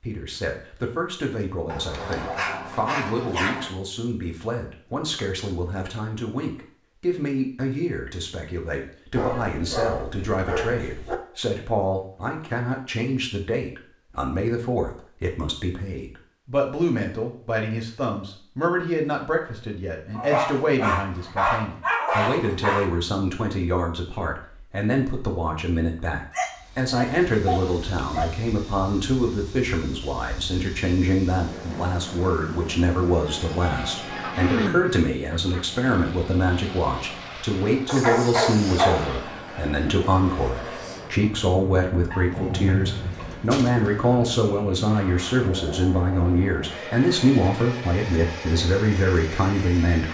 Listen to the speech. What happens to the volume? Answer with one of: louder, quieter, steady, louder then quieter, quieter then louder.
louder.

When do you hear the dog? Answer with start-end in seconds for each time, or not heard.
1.6-3.7, 9.2-11.2, 20.1-22.9, 26.3-28.3, 37.9-39.5, 42.1-44.0.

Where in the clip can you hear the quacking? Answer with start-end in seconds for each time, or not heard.
34.1-35.6.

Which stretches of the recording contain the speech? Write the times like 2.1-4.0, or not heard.
0.0-50.0.